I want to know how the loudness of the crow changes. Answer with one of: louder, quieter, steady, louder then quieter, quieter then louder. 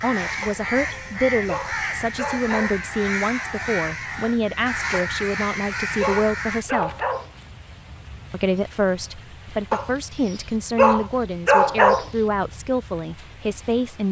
steady.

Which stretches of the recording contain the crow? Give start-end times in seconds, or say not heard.
0.0-6.7.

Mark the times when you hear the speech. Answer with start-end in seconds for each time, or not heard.
0.0-6.9, 8.3-14.0.